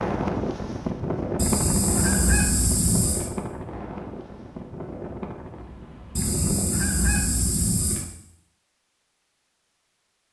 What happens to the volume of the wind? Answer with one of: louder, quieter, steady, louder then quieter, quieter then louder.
quieter.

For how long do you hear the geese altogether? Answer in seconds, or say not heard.
4 s.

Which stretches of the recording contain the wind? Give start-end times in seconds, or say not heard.
0.0-6.9.